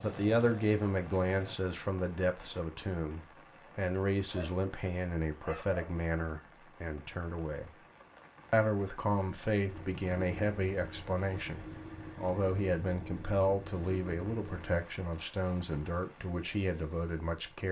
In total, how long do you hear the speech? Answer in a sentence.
You can hear the speech for 17 seconds altogether.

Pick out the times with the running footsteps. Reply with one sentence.
You can't hear the running footsteps here.